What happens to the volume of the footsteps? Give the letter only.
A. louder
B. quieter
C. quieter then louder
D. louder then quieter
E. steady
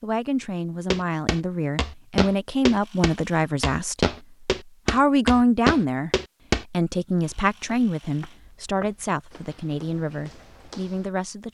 B.